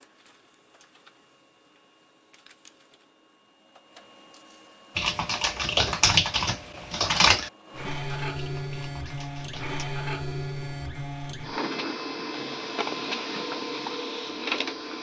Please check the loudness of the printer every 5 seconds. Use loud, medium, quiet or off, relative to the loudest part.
quiet, loud, loud.